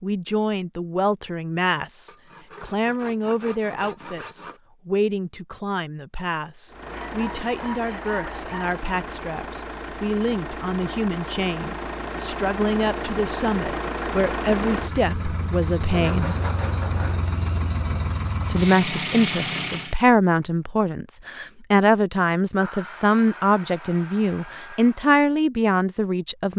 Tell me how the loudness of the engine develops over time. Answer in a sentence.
The volume of the engine goes up.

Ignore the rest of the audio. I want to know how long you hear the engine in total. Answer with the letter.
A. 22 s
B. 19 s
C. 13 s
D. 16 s
C.